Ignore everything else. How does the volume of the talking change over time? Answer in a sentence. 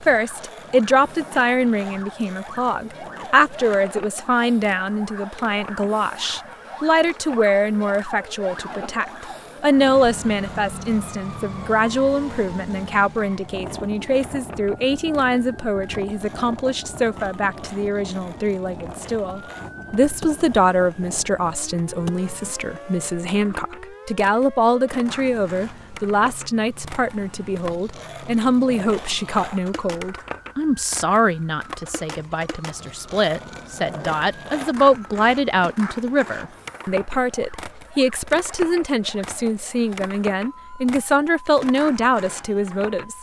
The loudness of the talking stays about the same.